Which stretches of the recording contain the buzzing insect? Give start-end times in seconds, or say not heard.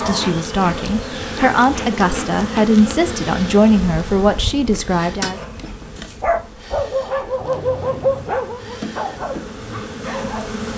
0.0-10.7.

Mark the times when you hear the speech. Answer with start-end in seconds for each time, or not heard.
0.0-5.4.